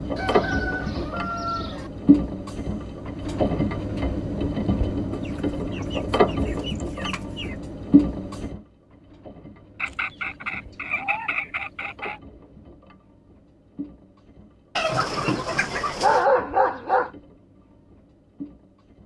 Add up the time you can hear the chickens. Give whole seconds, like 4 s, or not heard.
8 s.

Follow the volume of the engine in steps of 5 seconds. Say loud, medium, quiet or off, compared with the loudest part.
loud, loud, quiet, quiet.